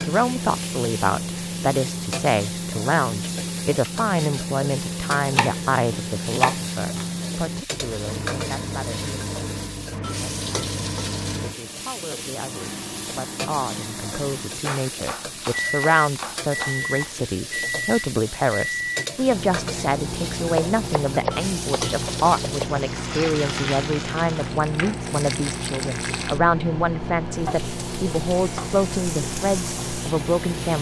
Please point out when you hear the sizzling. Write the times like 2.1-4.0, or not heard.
0.0-30.7.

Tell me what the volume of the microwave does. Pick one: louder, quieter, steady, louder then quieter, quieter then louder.
steady.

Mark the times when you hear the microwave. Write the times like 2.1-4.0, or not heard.
0.0-30.7.